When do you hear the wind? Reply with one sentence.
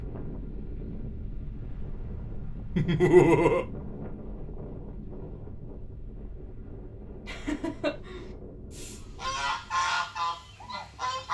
You can hear the wind from 0.0 to 9.8 s.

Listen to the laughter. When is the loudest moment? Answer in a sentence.
The loudest moment of the laughter is at 3 seconds.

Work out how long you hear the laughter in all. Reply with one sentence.
The laughter can be heard for 2 seconds in total.